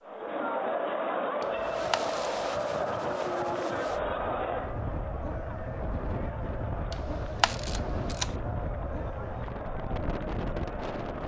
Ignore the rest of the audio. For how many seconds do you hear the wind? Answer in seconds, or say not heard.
10 s.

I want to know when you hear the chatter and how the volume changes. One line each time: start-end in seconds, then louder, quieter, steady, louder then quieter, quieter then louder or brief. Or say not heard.
0.0-11.2 quieter.